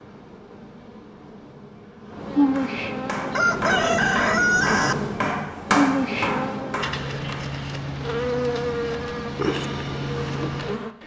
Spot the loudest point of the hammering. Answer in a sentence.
The loudest moment of the hammering is at 6 seconds.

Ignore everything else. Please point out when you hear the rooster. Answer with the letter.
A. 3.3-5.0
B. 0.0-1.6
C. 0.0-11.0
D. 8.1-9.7
A.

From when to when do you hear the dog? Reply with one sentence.
The dog can't be heard in this clip.